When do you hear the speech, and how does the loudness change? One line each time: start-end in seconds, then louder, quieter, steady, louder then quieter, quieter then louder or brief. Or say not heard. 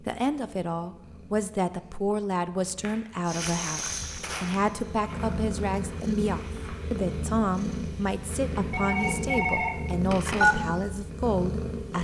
0.0-12.0 steady.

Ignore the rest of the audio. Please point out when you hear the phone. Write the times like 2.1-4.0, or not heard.
8.7-10.6.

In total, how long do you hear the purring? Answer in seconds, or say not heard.
12 s.